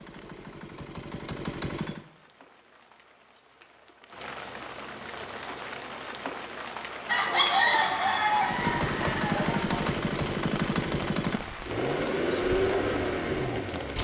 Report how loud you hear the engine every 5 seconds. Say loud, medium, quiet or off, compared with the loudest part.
medium, loud, loud.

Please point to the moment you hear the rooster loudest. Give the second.
8 s.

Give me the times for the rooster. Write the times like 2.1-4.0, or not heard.
7.0-9.8.